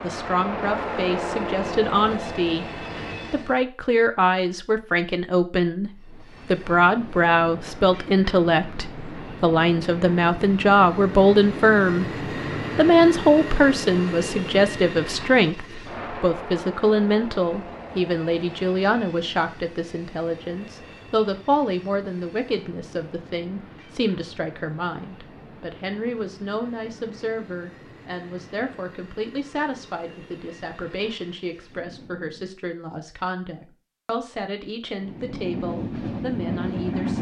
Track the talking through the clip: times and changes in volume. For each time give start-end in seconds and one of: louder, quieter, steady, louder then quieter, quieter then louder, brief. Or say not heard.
0.0-12.1 louder
12.8-37.1 quieter.